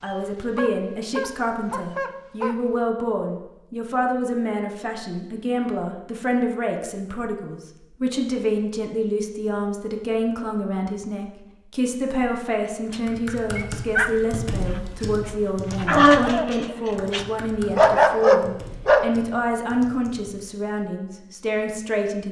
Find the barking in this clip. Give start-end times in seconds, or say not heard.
0.0-2.6, 12.9-19.1.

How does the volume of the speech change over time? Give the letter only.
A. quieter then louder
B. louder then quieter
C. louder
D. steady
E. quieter
D.